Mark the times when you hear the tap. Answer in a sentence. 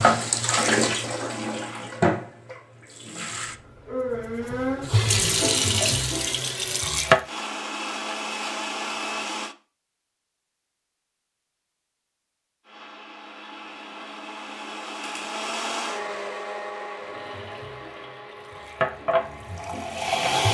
You can hear the tap from 0.0 to 7.2 s and from 17.0 to 20.4 s.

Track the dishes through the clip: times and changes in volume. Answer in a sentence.
The dishes can't be heard in this clip.